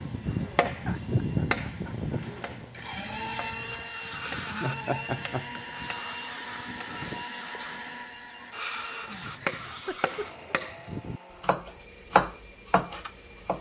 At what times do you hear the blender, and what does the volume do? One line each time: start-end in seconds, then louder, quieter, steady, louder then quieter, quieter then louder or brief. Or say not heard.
0.0-13.5 louder then quieter.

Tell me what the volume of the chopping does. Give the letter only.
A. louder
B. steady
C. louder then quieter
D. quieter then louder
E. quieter
D.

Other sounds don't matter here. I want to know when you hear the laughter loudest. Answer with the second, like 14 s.
5 s.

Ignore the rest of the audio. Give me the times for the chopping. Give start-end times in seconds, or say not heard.
0.0-7.2, 9.1-13.5.